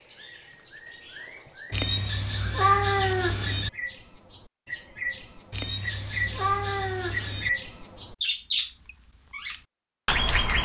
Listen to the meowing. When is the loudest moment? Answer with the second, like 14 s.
3 s.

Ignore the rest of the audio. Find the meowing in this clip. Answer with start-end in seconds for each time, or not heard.
1.7-3.7, 5.5-7.5.